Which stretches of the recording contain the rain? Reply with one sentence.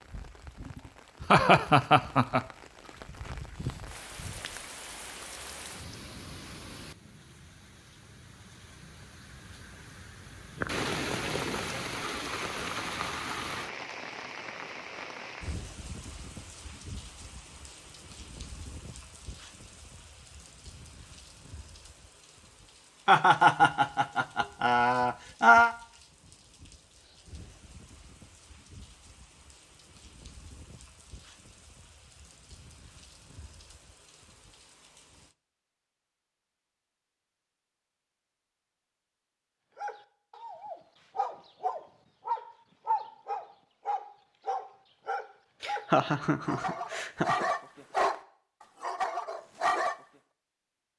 You can hear the rain from 0.0 to 35.4 s.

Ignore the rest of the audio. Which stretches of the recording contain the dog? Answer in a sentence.
You can hear the dog from 39.8 to 48.2 s and from 48.8 to 50.0 s.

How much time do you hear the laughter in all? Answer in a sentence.
You can hear the laughter for 6 seconds altogether.